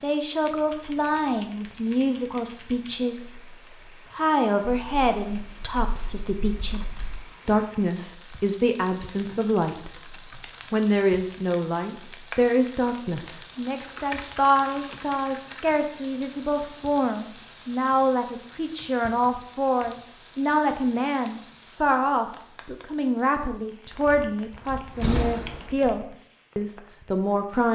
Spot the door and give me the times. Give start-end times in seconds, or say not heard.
24.5-25.8.